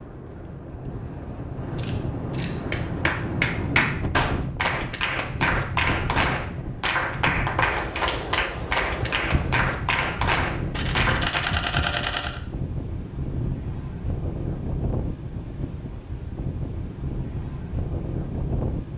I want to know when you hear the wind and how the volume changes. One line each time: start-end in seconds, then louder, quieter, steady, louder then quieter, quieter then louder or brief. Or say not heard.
0.0-18.9 steady.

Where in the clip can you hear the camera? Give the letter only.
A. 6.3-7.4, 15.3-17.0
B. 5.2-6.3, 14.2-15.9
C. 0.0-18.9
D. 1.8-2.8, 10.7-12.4
D.